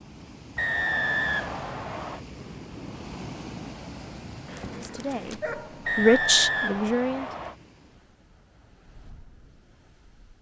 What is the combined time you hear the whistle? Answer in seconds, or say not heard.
3 s.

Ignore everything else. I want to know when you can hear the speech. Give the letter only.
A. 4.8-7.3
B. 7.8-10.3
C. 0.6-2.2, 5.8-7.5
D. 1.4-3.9
A.